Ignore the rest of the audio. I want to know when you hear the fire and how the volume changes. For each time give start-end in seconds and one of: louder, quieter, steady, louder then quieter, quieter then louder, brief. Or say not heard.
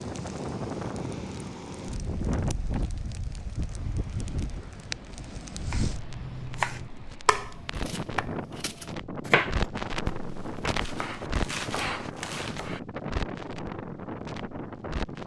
0.0-15.2 louder then quieter.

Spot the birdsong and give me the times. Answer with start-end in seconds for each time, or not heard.
not heard.